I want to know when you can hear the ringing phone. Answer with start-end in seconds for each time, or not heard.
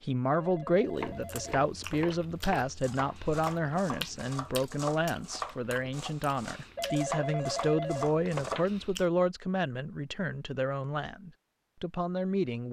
0.3-2.2, 6.8-8.7.